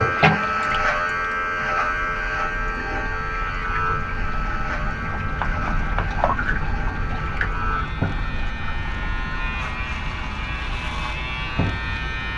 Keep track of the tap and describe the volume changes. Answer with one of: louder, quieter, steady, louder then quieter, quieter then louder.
louder then quieter.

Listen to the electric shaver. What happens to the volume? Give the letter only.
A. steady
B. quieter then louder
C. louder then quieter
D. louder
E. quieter
E.